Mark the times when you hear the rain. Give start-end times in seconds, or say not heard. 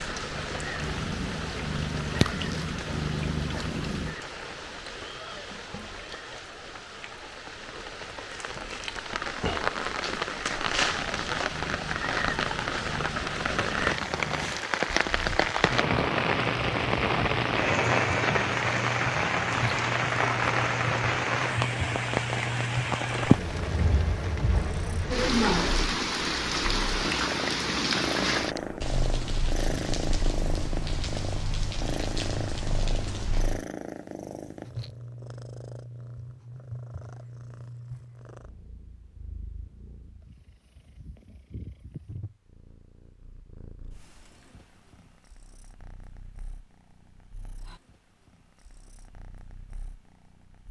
0.0-33.6.